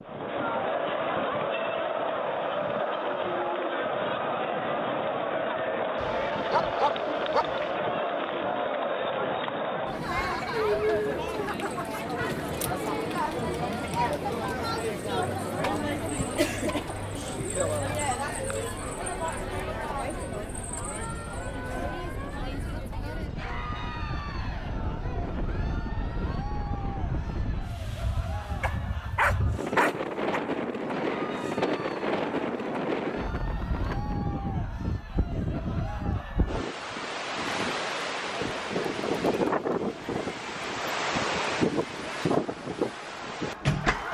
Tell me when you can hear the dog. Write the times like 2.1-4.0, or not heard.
6.0-7.7, 28.6-30.4.